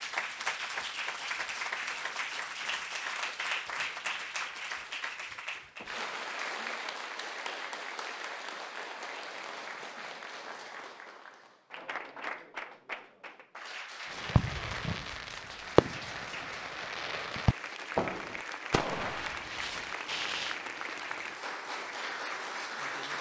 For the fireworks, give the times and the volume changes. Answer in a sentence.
The fireworks can be heard from 14.1 to 20.6 s, getting louder then quieter.